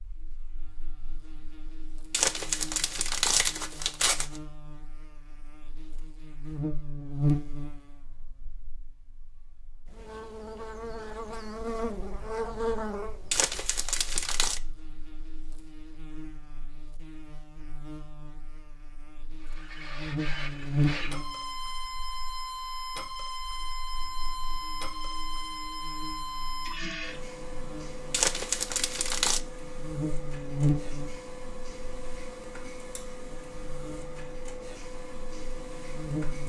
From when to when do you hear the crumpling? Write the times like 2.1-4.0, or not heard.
2.1-4.4, 13.3-14.6, 28.1-29.4.